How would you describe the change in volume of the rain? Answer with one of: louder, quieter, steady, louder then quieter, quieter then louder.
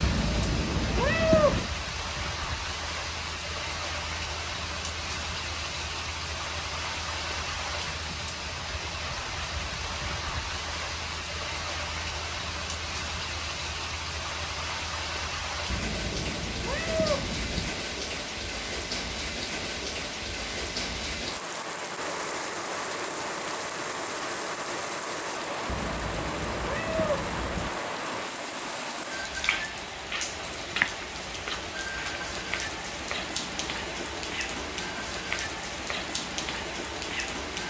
steady.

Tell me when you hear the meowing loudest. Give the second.
1 s.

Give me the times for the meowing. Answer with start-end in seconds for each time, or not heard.
0.0-1.7, 15.7-17.7, 25.6-27.7.